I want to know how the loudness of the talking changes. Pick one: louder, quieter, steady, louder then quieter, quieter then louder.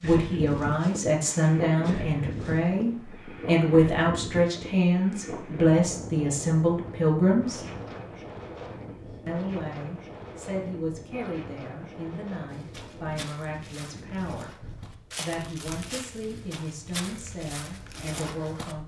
quieter.